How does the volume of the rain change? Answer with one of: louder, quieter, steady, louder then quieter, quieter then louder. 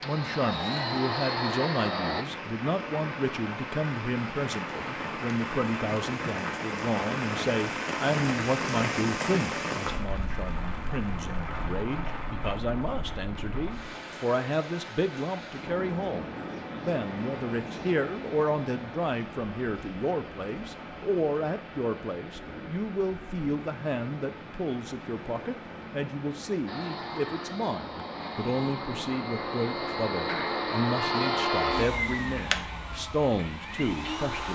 quieter.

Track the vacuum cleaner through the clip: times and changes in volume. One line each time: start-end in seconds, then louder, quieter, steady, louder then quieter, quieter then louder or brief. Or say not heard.
0.0-2.2 brief
26.6-34.5 louder then quieter.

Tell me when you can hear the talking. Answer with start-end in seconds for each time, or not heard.
0.0-34.5.